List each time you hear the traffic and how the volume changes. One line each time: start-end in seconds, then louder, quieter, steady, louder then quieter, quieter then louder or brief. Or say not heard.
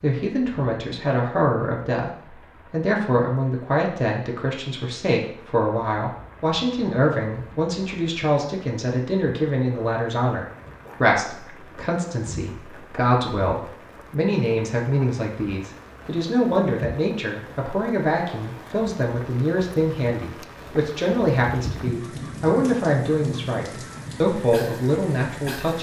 not heard.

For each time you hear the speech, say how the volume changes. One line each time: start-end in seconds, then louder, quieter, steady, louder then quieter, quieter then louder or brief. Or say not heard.
0.0-25.7 steady.